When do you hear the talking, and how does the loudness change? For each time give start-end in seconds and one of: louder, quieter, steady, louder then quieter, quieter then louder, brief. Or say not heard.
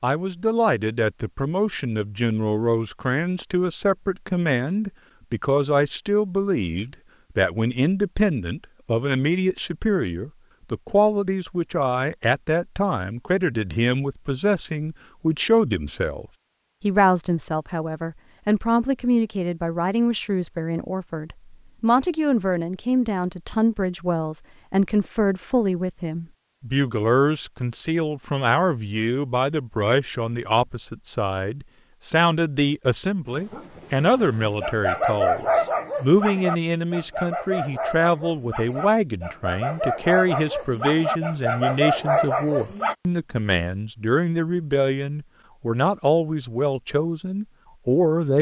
0.0-48.3 steady.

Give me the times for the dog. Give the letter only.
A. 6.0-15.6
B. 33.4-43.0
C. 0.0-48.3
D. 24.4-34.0
B.